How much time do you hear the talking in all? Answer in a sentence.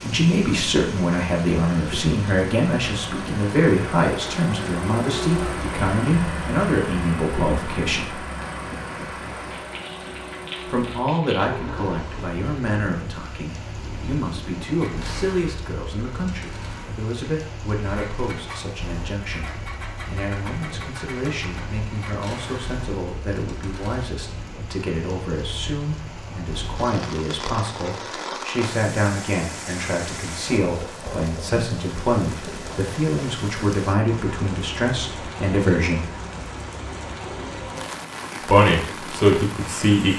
You can hear the talking for 35 seconds altogether.